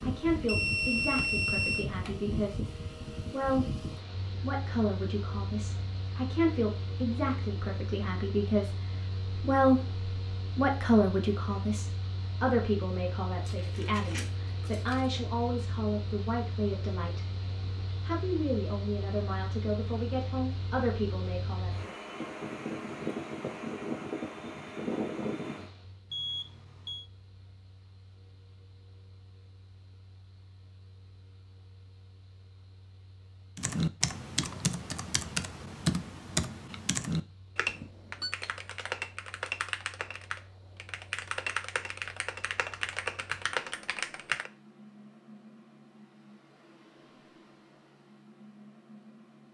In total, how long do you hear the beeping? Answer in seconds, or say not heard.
3 s.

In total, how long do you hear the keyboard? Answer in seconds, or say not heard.
11 s.